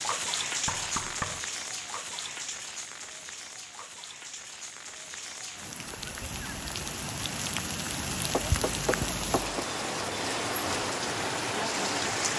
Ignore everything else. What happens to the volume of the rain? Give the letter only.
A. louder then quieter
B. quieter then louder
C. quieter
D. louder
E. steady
B.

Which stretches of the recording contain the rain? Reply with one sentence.
The rain can be heard from 0.0 to 12.3 s.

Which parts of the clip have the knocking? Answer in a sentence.
You can hear the knocking from 0.7 to 1.4 s and from 8.3 to 9.7 s.